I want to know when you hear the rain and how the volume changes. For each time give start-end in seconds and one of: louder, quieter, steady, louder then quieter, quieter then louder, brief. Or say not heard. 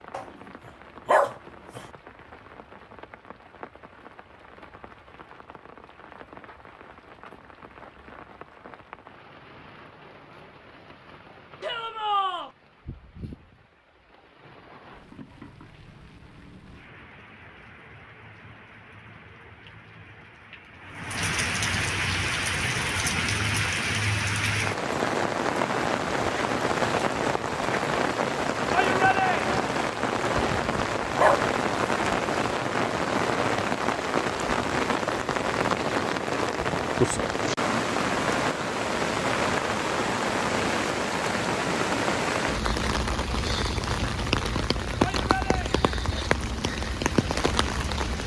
0.0-48.2 louder.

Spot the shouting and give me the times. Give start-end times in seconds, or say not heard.
11.6-12.5, 28.7-29.5, 45.0-45.8.